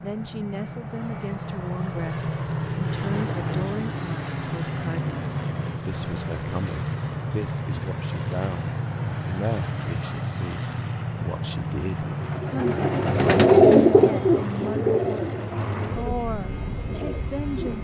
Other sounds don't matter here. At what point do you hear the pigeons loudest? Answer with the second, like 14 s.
14 s.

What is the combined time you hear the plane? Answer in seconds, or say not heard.
18 s.